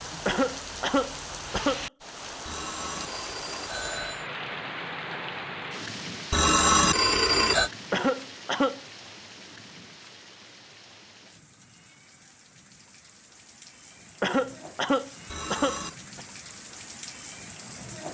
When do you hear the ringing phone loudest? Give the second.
7 s.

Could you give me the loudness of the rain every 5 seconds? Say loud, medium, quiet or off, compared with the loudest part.
loud, loud, quiet, medium.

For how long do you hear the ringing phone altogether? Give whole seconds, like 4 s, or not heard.
4 s.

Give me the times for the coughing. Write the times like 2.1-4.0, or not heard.
0.2-1.9, 7.9-8.8, 14.2-16.2.